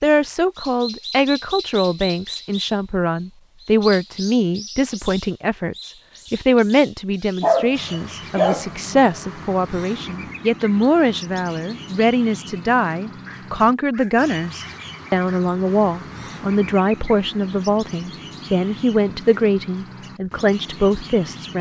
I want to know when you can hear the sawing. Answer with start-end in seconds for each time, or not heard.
not heard.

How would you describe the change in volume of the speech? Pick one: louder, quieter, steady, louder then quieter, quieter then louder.
steady.